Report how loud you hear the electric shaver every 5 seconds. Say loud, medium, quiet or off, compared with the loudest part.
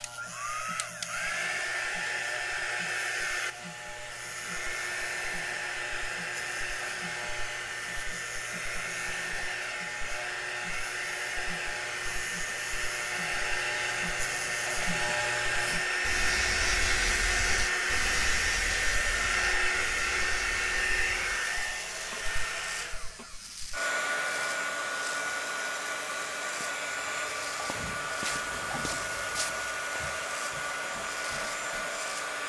medium, medium, medium, loud, medium, medium, medium.